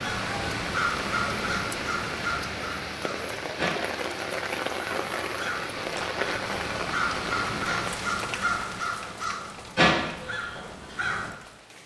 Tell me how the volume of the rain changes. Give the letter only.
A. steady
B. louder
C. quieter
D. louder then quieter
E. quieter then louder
C.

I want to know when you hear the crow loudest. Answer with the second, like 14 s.
10 s.